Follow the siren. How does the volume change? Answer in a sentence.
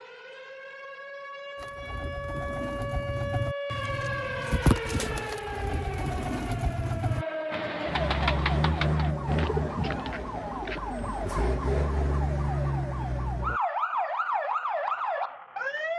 The loudness of the siren goes up.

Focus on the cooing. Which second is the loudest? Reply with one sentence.
The loudest moment of the cooing is at 5 seconds.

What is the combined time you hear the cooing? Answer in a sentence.
You can hear the cooing for 10 seconds altogether.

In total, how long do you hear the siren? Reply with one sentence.
You can hear the siren for 16 seconds altogether.